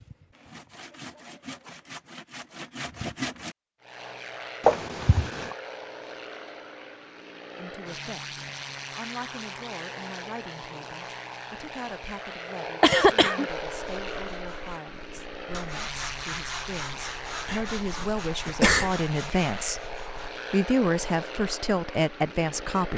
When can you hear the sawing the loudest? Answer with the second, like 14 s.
3 s.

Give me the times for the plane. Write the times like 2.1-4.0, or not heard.
3.8-22.9.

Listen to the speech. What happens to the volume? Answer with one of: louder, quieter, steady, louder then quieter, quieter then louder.
louder.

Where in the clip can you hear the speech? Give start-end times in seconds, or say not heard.
7.5-22.9.